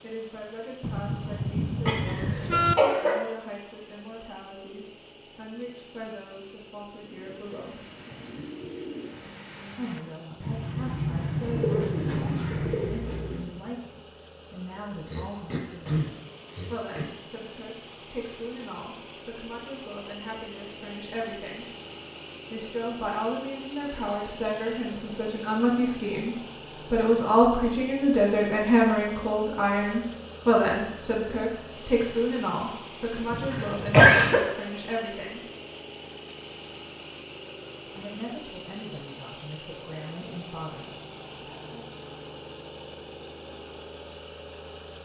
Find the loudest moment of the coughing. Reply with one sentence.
The loudest moment of the coughing is at 34 seconds.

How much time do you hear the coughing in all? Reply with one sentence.
The coughing can be heard for 4 seconds in total.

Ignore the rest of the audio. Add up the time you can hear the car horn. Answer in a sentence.
The car horn can be heard for 3 seconds in total.